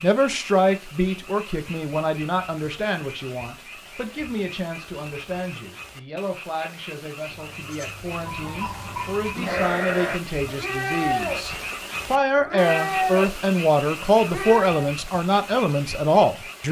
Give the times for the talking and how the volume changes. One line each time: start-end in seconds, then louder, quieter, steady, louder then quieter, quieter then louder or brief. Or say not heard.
0.0-16.6 quieter then louder.